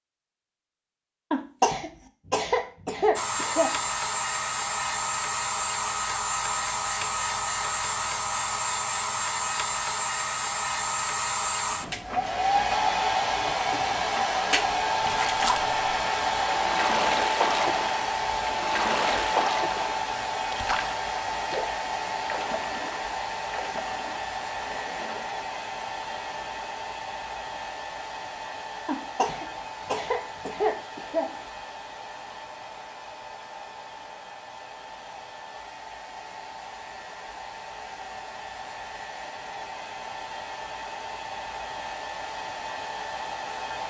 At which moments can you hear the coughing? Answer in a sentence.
You can hear the coughing from 1.3 to 3.7 s and from 28.9 to 31.5 s.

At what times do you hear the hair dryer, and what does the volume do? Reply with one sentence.
You can hear the hair dryer from 3.1 to 43.8 s, getting quieter.